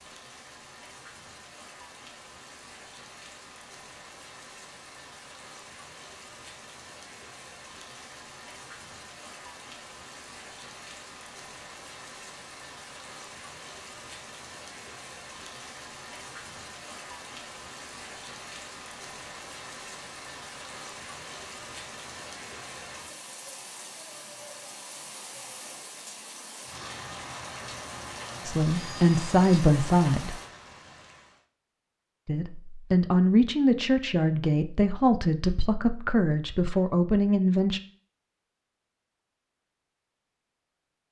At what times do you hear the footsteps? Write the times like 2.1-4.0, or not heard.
not heard.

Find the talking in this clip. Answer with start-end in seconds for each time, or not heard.
28.4-30.4, 32.2-37.8.